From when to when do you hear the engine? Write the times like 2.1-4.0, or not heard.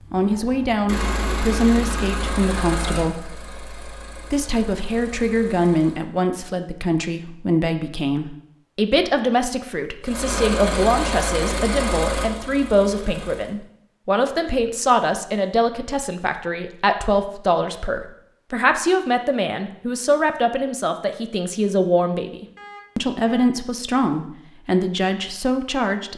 0.0-6.0, 10.0-13.6.